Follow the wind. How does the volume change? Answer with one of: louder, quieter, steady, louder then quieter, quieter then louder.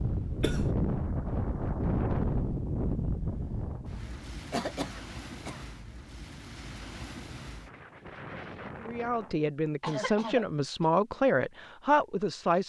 quieter.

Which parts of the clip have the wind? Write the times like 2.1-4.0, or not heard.
0.0-9.4.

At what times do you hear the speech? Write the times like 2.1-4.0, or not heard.
8.8-12.6.